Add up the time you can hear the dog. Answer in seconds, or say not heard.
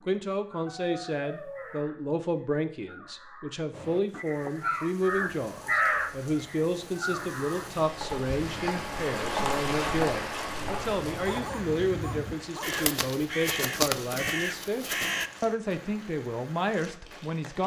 3 s.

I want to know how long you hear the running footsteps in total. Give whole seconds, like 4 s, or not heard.
not heard.